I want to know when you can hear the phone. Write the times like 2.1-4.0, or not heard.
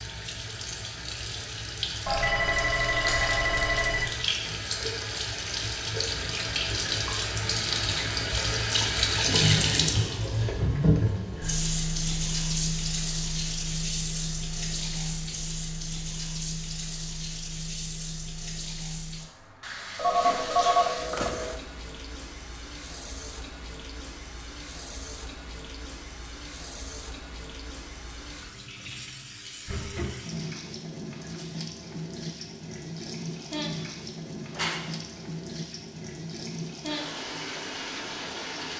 2.0-4.0, 19.9-21.6, 34.5-35.0.